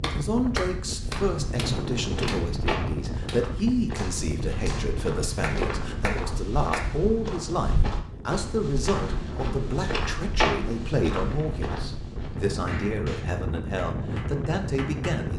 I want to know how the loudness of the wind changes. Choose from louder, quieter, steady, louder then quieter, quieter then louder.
quieter then louder.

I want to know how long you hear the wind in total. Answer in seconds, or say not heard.
15 s.